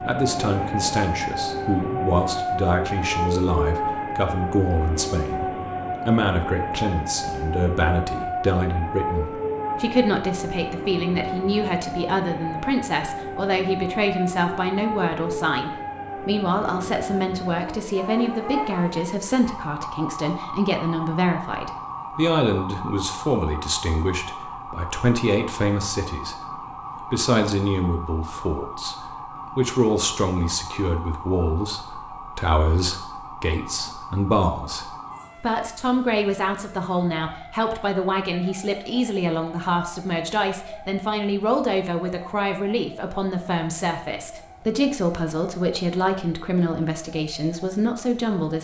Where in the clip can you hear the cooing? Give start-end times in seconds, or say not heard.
not heard.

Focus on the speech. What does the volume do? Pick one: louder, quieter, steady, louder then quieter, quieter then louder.
steady.